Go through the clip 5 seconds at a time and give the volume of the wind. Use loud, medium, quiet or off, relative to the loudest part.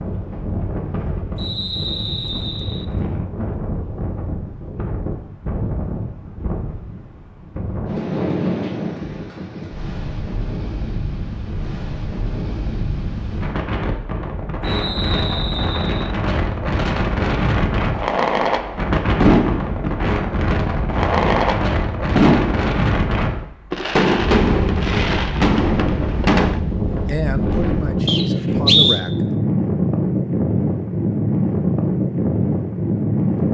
medium, medium, medium, loud, loud, loud, loud.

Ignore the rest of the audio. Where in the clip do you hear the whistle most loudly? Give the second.
29 s.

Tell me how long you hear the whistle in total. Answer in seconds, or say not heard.
4 s.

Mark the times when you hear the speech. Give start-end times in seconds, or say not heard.
27.1-29.2.